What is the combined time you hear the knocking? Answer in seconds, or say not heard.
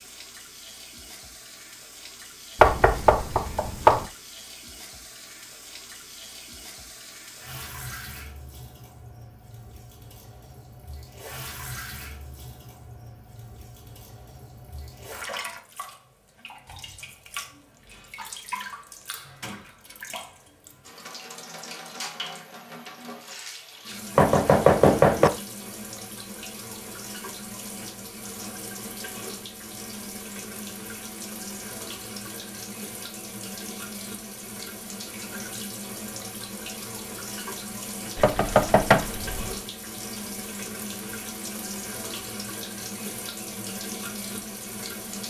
4 s.